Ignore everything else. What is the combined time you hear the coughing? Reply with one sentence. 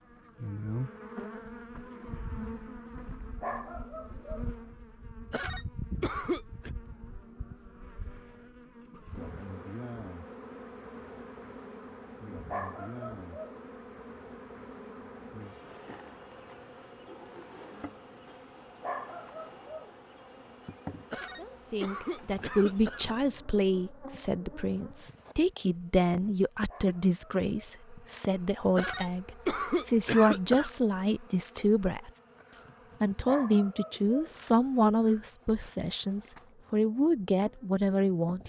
You can hear the coughing for 5 seconds altogether.